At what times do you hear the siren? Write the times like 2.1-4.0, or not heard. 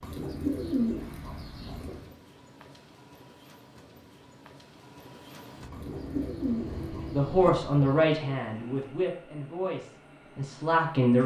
not heard.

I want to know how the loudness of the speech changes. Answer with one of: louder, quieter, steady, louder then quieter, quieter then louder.
quieter then louder.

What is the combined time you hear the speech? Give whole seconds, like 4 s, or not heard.
4 s.